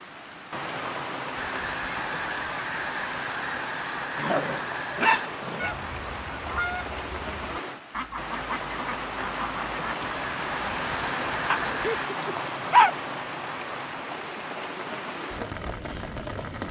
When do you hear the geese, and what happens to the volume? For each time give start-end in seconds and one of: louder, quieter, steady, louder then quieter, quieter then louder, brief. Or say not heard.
1.4-12.1 steady.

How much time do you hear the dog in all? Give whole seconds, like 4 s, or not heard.
3 s.